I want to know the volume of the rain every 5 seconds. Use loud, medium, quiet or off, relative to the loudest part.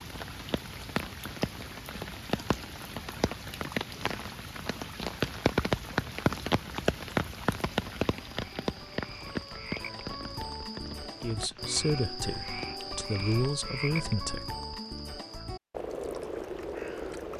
medium, loud, quiet, off.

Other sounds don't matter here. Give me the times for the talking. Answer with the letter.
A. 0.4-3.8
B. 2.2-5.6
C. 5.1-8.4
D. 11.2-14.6
D.